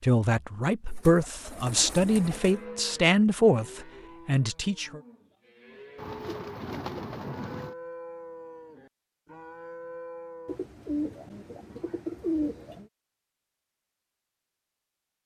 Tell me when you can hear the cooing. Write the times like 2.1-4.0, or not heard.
0.9-2.5, 6.0-7.8, 10.4-12.8.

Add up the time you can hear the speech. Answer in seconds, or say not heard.
5 s.